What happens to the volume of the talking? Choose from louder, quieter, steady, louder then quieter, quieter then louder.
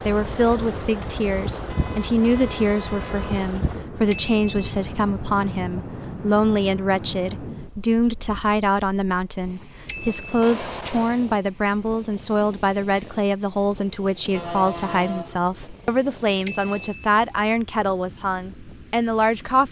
steady.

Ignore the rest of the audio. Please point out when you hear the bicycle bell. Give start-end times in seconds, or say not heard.
4.1-4.7, 9.8-10.5, 16.4-17.1.